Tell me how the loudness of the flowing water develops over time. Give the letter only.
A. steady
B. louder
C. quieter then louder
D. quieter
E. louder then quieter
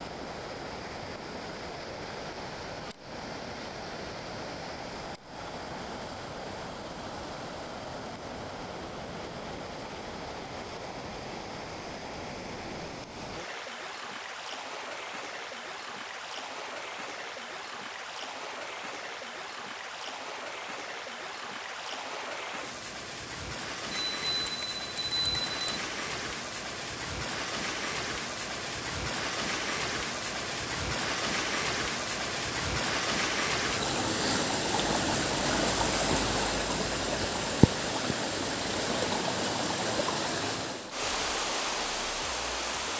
B.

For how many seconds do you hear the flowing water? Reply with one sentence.
You can hear the flowing water for 43 seconds altogether.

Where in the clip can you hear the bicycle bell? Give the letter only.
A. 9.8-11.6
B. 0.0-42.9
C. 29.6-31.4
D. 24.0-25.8
D.